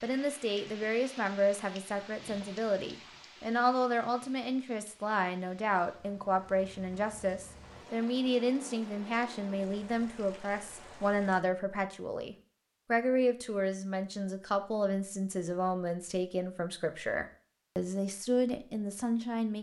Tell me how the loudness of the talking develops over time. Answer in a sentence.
The volume of the talking stays about the same.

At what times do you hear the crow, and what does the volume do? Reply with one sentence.
You can't hear the crow here.